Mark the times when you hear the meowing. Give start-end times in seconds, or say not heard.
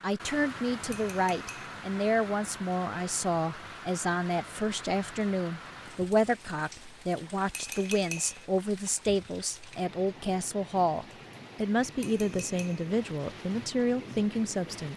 not heard.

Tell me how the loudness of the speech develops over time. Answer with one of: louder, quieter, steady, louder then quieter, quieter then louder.
steady.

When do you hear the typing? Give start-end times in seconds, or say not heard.
not heard.